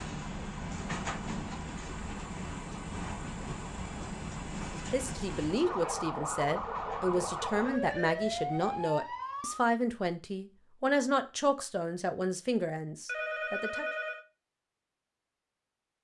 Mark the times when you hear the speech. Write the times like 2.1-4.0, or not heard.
4.7-13.8.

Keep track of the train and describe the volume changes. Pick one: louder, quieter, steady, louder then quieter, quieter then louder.
quieter.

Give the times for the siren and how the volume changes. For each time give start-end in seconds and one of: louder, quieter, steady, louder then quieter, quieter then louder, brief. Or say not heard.
0.0-9.6 louder.